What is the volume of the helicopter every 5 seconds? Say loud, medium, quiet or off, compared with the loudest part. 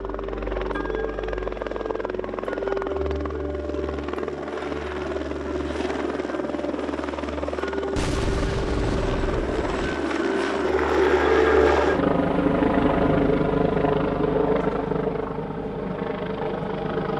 medium, medium, loud, medium.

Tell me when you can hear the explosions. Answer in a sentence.
The explosions can be heard from 8.0 to 9.9 s.